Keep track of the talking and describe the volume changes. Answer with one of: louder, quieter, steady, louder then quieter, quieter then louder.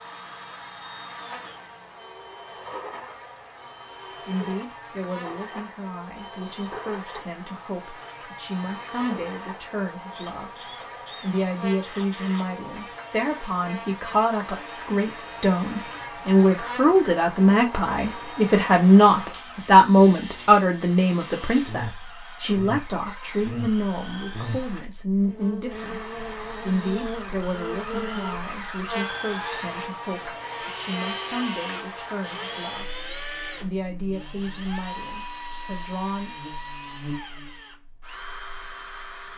louder then quieter.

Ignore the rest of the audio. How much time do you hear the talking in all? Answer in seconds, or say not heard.
32 s.